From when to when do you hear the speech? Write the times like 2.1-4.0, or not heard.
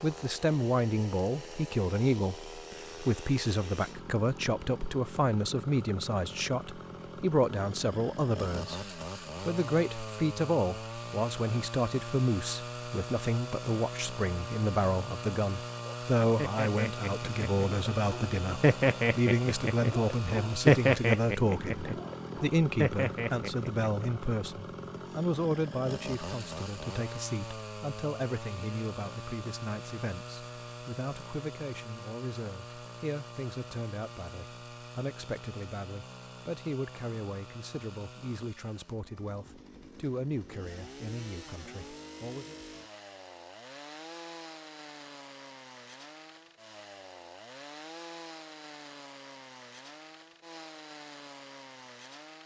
0.0-42.5.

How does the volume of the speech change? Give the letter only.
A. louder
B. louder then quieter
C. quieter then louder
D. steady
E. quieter
E.